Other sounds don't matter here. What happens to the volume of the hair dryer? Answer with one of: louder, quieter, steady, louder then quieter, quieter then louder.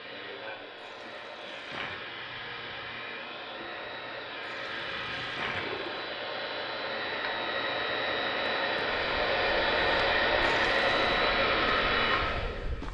louder.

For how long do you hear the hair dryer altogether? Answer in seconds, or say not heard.
13 s.